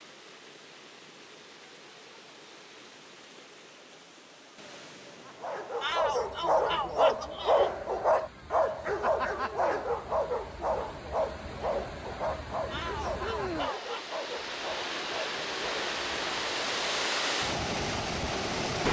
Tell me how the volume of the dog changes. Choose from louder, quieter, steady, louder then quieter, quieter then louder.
quieter.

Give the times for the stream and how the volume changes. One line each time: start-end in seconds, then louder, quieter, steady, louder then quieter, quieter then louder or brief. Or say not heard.
0.0-18.8 louder.